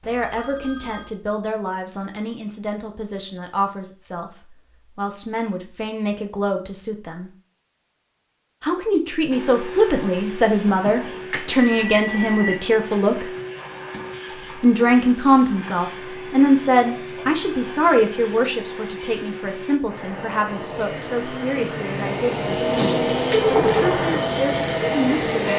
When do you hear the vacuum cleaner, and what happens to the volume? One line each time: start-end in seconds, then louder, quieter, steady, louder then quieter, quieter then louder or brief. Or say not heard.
9.3-25.5 louder.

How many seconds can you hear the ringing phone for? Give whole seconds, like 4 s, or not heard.
4 s.